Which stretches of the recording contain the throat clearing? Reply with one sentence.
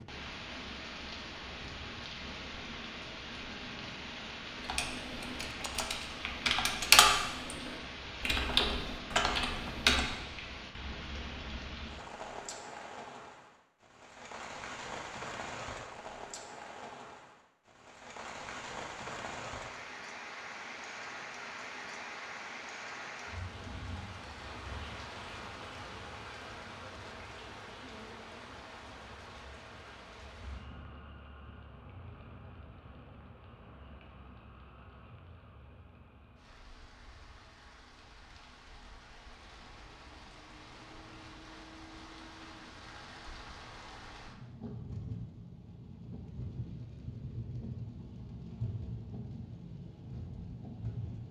You can't hear the throat clearing here.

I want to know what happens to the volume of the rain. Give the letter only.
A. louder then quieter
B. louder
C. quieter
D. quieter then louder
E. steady
D.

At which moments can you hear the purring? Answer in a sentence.
The purring can't be heard in this clip.